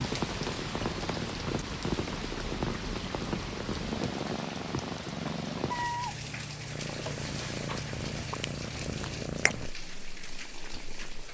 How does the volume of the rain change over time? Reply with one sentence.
The volume of the rain goes down.